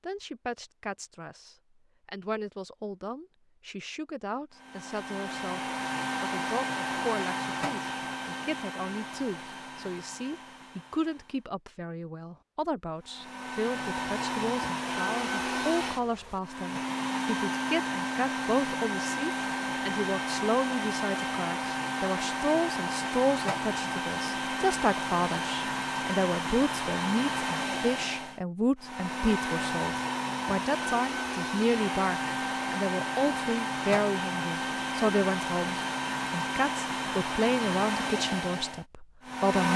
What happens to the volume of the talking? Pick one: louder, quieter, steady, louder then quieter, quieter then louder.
louder.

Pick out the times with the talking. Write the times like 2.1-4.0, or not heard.
0.0-5.6, 6.2-39.7.